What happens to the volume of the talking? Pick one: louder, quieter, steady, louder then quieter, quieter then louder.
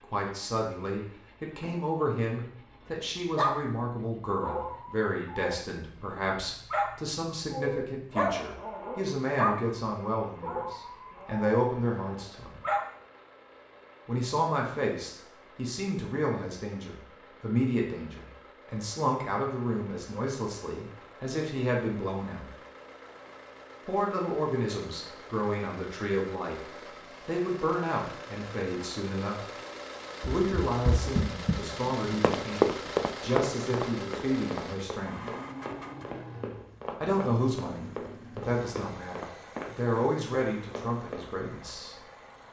steady.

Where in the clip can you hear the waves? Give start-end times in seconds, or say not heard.
not heard.